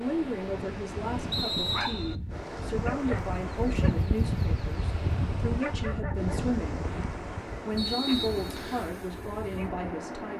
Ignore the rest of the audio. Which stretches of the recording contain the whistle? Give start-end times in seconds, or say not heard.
1.3-2.1, 7.8-8.9.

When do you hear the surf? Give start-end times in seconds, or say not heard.
0.0-10.3.